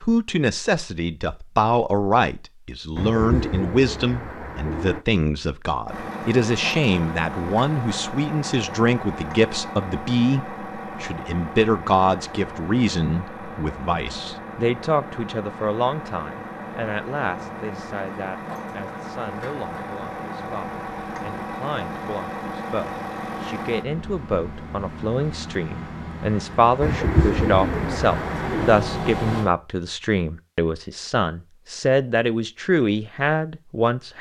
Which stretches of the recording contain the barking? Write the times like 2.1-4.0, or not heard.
not heard.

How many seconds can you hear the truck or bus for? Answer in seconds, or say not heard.
24 s.